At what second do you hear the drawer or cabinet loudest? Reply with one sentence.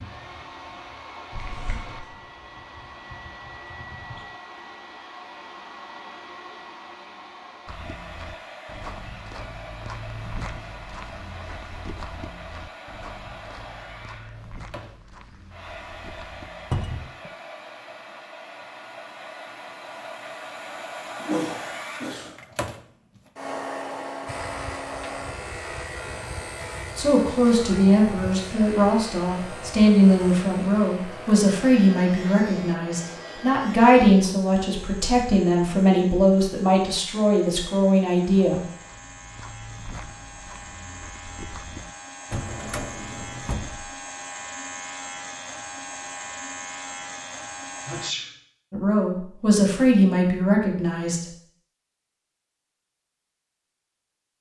The volume of the drawer or cabinet peaks at 17 seconds.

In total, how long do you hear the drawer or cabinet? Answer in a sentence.
The drawer or cabinet can be heard for 2 seconds in total.